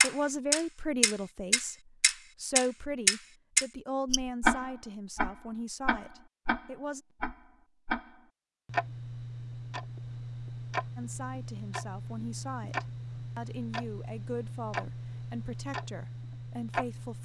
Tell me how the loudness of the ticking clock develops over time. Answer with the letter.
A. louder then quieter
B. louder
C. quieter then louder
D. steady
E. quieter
E.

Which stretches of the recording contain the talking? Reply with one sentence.
The talking can be heard from 0.0 to 7.0 s and from 10.9 to 17.1 s.